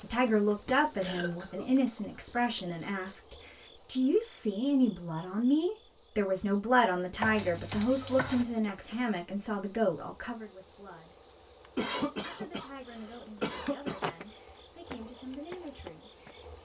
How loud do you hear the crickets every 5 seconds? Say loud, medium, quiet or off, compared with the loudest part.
loud, medium, loud, loud.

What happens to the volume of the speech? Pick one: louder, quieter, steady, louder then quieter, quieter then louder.
quieter.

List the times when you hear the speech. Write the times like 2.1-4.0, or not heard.
0.0-11.2, 12.2-16.2.